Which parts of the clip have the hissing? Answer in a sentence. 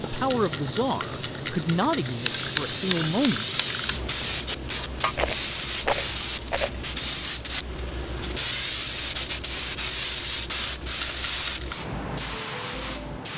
You can hear the hissing from 0.0 to 13.3 s.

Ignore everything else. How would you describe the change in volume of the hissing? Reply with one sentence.
The loudness of the hissing stays about the same.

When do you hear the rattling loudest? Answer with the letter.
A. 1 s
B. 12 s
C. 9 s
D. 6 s
D.